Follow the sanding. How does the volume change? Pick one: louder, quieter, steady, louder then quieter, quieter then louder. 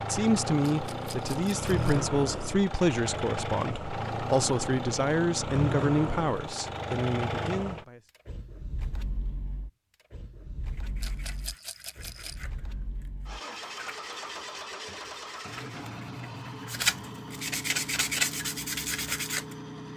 louder.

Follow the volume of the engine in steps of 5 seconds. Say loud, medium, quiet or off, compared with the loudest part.
loud, loud, medium, medium.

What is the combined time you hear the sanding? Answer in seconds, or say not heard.
9 s.